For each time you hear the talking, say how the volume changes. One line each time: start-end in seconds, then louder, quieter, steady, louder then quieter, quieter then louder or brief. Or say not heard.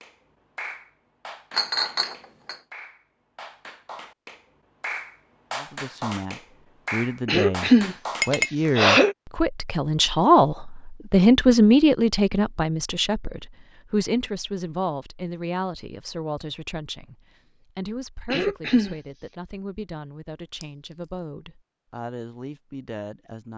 5.5-23.5 louder then quieter.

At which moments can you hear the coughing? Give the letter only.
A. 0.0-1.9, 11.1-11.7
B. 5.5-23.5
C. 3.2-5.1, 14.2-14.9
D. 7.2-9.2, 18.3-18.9
D.